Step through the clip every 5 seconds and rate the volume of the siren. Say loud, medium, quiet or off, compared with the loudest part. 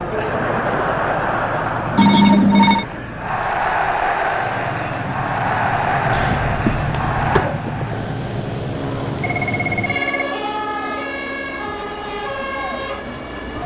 medium, loud, loud.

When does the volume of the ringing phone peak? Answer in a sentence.
The volume of the ringing phone peaks at 2 seconds.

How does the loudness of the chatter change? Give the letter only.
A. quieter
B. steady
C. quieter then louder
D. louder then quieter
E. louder
A.